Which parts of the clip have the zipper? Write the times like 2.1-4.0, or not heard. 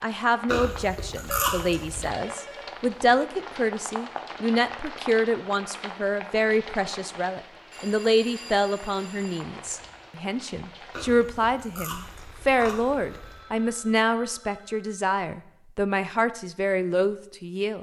not heard.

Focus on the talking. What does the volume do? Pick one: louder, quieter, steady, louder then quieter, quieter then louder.
steady.